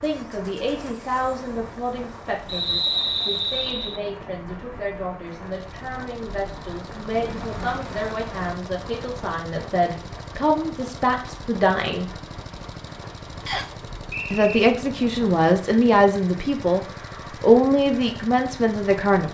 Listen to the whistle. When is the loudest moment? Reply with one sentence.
The loudest moment of the whistle is at 3 seconds.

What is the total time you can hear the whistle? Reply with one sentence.
You can hear the whistle for 3 seconds altogether.